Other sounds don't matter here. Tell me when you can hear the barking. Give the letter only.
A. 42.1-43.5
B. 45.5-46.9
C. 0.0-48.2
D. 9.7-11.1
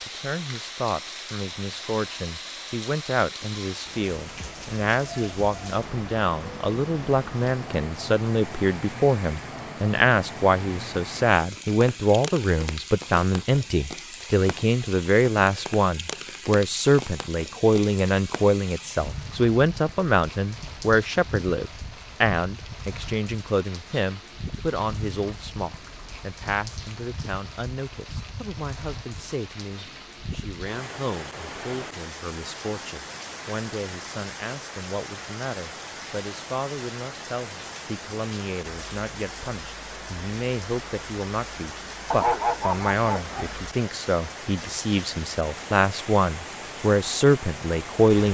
A.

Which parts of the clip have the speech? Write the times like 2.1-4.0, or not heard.
0.0-48.2.